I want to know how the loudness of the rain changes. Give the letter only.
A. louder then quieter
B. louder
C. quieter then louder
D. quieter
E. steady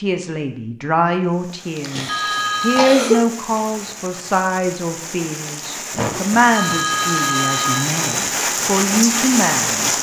B.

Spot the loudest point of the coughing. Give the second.
3 s.